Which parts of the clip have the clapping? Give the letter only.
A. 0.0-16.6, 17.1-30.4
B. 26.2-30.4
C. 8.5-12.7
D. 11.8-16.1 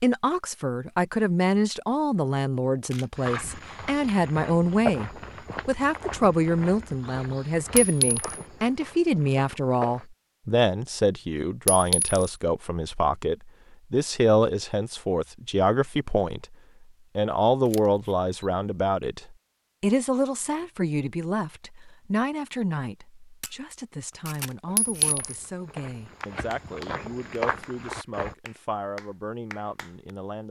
B.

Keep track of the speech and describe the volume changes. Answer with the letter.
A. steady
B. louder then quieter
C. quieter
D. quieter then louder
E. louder
C.